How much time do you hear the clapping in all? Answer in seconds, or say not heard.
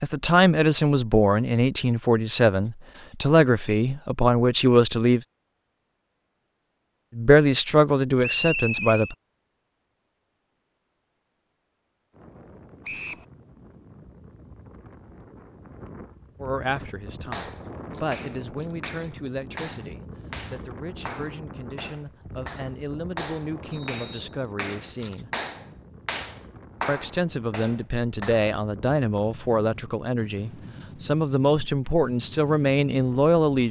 12 s.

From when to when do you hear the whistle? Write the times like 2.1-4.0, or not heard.
8.2-9.2, 12.8-13.2, 23.7-24.4.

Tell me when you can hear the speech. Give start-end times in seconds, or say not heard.
0.0-5.2, 7.2-9.2, 16.4-25.3, 26.9-33.6.